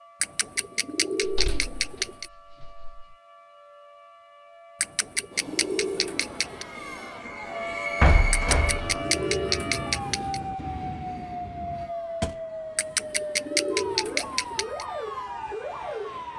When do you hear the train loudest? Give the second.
8 s.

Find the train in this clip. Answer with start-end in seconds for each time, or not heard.
5.3-11.9.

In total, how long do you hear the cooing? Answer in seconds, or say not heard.
8 s.